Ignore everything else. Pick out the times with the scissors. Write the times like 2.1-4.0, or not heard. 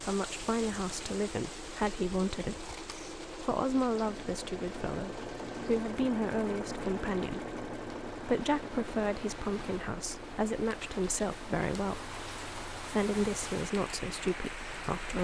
2.5-3.2.